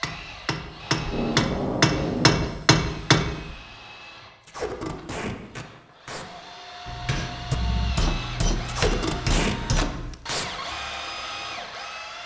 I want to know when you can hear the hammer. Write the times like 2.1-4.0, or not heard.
0.0-3.6, 6.8-10.2.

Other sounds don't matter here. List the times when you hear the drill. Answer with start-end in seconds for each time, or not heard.
0.0-12.2.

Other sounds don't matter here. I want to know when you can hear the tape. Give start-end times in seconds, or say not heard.
1.0-2.5, 4.4-6.2, 8.7-10.4.